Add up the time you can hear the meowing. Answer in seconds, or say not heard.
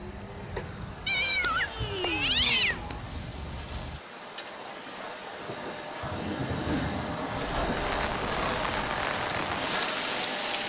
2 s.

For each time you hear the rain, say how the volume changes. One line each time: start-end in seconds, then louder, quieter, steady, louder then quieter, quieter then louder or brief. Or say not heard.
0.0-10.6 louder.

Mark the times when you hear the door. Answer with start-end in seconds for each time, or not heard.
7.3-8.8.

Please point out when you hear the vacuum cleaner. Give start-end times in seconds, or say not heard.
0.0-10.6.